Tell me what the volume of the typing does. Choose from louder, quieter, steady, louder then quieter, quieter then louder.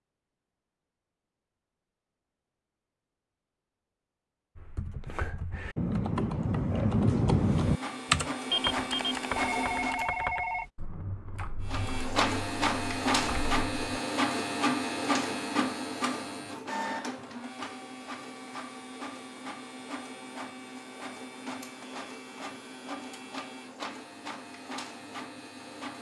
louder then quieter.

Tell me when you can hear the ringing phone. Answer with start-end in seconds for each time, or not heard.
9.3-10.7.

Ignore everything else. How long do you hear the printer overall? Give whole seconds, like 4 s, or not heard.
17 s.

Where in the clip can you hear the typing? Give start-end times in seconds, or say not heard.
4.5-14.0.